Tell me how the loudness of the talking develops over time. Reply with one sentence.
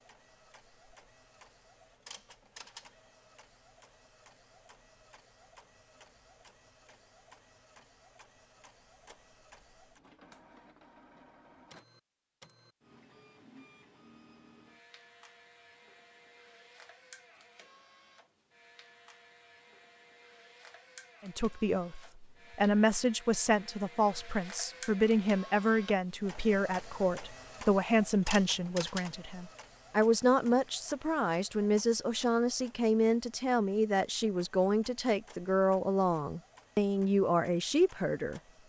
The loudness of the talking stays about the same.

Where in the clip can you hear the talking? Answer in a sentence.
You can hear the talking from 21.2 to 38.4 s.